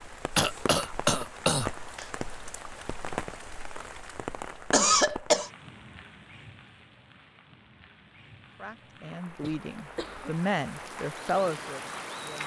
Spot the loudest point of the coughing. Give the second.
5 s.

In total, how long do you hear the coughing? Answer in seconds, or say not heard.
4 s.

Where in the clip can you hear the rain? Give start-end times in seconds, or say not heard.
0.0-12.4.